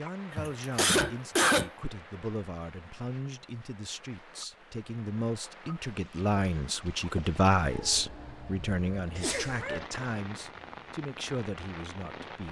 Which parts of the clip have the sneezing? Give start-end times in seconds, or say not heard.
0.3-1.7, 9.2-9.8.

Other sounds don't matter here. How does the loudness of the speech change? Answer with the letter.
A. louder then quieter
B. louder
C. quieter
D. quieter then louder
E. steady
A.